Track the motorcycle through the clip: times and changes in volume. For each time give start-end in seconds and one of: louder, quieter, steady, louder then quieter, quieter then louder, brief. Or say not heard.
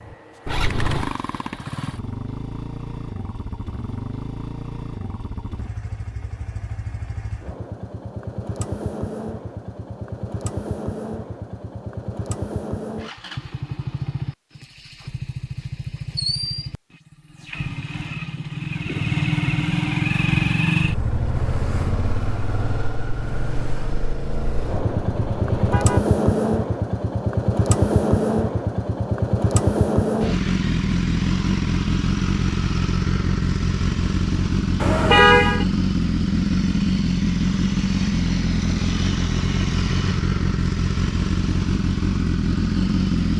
0.0-43.3 louder.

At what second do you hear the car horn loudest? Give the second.
35 s.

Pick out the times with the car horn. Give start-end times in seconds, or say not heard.
0.5-1.1, 24.7-26.0, 34.8-35.6.